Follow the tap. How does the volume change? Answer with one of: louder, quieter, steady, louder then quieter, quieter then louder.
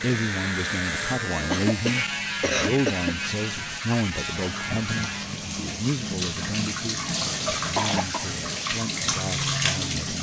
louder.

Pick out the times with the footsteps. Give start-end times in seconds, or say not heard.
not heard.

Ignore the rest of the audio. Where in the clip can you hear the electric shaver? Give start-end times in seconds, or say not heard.
0.0-5.2.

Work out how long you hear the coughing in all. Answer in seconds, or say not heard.
2 s.